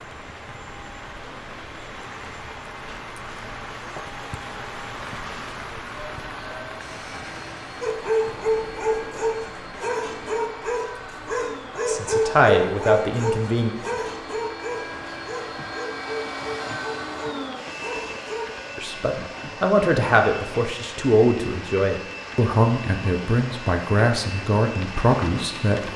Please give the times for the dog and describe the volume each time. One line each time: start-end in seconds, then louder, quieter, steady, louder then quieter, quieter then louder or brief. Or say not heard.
7.8-18.5 quieter.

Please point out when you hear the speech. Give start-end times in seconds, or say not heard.
11.8-13.7, 18.8-25.9.